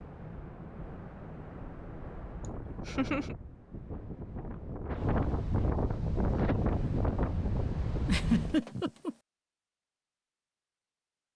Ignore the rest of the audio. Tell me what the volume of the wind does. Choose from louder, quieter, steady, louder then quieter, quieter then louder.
louder.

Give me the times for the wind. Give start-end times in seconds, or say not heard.
0.0-8.6.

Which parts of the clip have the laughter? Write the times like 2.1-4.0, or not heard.
2.9-3.4, 8.1-9.2.